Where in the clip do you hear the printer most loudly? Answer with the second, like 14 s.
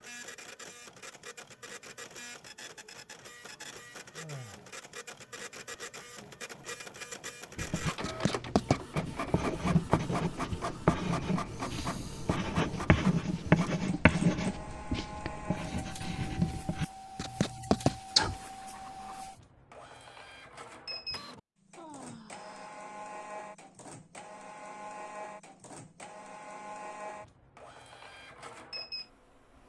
10 s.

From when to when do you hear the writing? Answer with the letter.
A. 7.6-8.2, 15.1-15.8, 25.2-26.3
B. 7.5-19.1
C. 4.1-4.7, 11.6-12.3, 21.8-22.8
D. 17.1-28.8
B.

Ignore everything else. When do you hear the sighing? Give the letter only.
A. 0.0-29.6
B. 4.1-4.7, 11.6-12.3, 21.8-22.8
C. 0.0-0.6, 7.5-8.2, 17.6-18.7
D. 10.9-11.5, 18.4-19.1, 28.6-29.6
B.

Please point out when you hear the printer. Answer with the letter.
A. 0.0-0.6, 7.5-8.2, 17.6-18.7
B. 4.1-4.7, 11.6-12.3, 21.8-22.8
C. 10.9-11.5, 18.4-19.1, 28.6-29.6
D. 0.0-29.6
D.